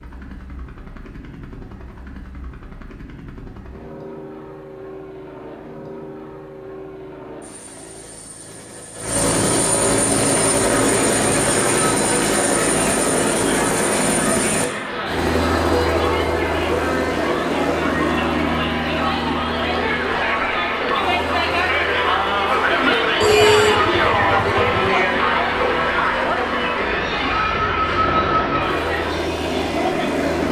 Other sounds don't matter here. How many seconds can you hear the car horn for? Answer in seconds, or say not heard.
2 s.